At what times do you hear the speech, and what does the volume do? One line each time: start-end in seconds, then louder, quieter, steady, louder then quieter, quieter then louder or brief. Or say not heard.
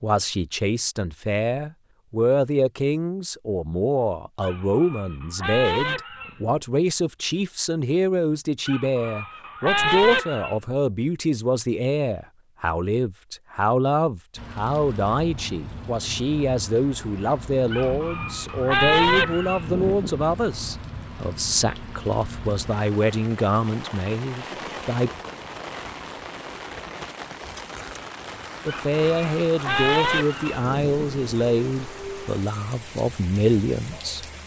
0.0-25.1 steady
28.6-34.2 quieter then louder.